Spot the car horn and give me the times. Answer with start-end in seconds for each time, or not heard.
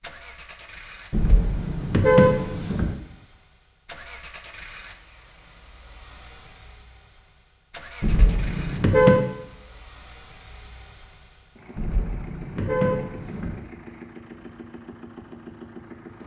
1.1-3.0, 8.0-9.2, 11.8-13.6.